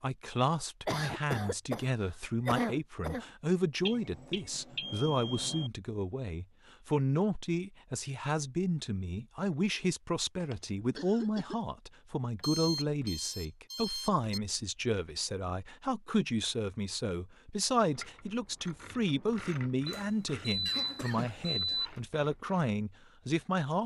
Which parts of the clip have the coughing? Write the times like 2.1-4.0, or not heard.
0.8-3.2, 10.4-11.6, 20.6-22.0.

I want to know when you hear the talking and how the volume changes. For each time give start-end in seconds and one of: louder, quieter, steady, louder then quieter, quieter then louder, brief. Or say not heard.
0.0-23.8 steady.